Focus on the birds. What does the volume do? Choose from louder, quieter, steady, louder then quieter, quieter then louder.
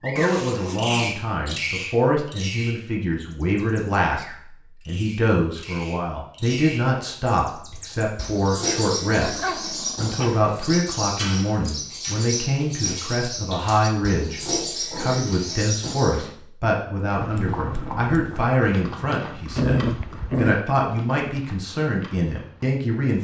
quieter then louder.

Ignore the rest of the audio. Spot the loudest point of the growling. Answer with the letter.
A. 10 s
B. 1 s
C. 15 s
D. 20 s
D.